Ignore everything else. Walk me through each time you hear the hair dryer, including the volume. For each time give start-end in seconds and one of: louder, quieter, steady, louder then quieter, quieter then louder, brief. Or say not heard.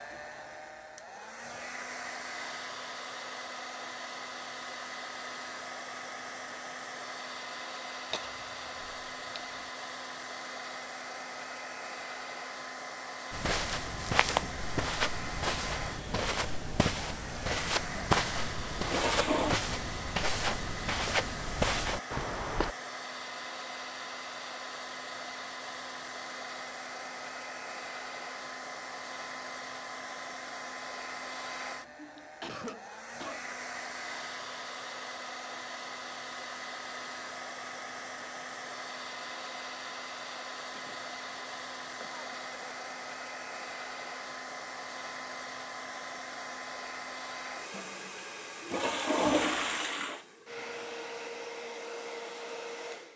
0.0-53.1 steady.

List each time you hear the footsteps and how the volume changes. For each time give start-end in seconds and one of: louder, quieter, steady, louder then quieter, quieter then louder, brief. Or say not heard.
13.3-22.8 steady.